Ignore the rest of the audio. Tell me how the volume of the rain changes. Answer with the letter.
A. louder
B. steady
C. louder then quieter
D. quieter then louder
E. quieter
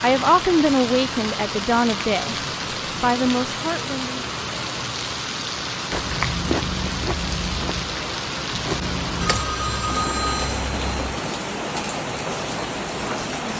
B.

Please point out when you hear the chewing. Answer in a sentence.
The chewing can be heard from 5.9 to 9.4 s.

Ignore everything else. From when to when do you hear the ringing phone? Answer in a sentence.
The ringing phone can be heard from 9.2 to 11.2 s.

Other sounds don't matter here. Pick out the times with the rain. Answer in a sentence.
The rain can be heard from 0.0 to 13.5 s.